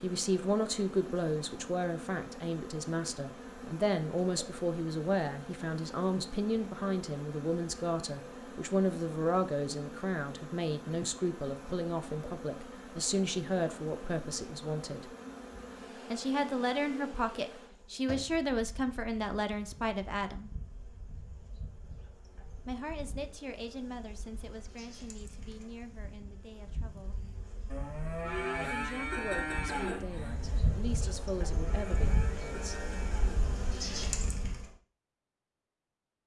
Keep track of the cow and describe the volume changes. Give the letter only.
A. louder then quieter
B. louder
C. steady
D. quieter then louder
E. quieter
E.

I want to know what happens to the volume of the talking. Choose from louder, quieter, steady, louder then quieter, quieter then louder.
quieter.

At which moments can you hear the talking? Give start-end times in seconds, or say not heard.
0.0-15.1, 16.1-20.5, 22.6-27.1, 28.7-32.8.